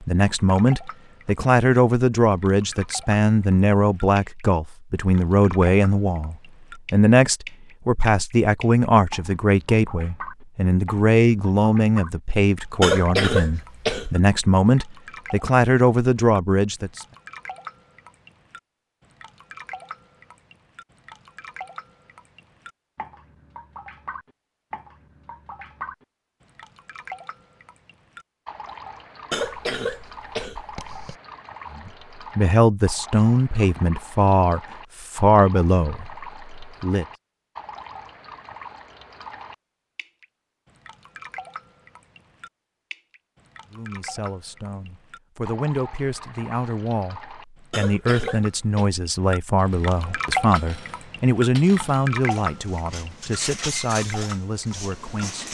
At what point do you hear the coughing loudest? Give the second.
13 s.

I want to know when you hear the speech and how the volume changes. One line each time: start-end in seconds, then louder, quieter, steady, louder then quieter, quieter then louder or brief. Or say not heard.
0.0-17.1 steady
31.8-37.0 quieter
43.7-55.4 louder then quieter.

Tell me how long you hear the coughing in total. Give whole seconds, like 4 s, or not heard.
4 s.